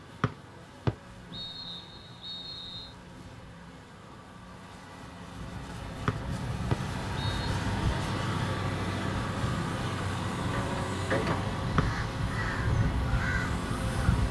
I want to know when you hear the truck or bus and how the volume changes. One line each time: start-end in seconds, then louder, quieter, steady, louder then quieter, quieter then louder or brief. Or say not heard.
0.0-14.2 louder.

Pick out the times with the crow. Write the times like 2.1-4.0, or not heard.
11.8-14.2.